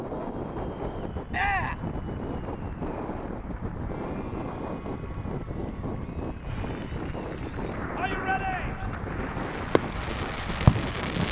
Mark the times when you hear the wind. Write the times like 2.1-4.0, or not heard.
0.0-11.2.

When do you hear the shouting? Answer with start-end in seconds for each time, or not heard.
1.3-1.9, 8.0-8.9.